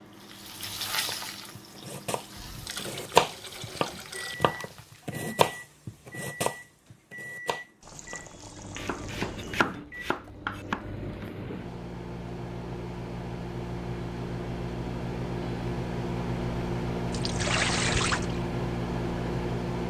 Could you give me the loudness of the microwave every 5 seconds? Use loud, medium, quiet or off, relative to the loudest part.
quiet, quiet, medium, loud.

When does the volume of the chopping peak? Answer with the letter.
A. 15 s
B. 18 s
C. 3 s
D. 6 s
C.